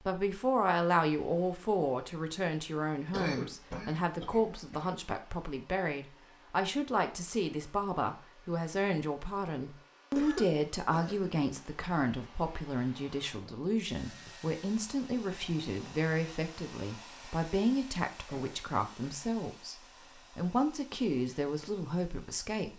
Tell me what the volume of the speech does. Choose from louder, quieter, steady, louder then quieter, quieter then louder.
steady.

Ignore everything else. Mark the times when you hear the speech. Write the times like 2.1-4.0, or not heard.
0.1-22.7.